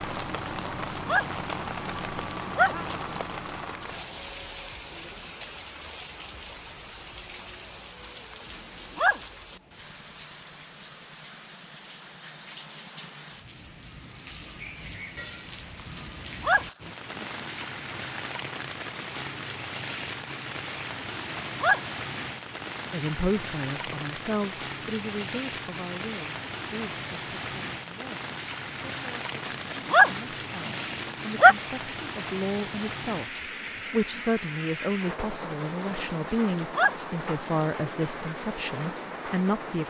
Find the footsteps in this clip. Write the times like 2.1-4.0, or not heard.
not heard.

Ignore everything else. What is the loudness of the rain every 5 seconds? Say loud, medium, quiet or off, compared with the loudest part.
loud, medium, medium, loud, loud, loud, loud, loud.